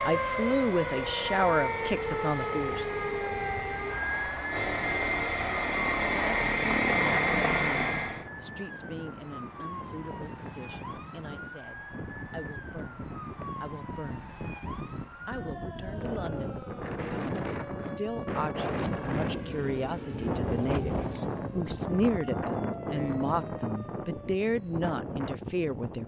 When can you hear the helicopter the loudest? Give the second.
7 s.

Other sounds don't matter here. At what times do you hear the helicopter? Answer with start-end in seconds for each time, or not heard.
0.0-8.2.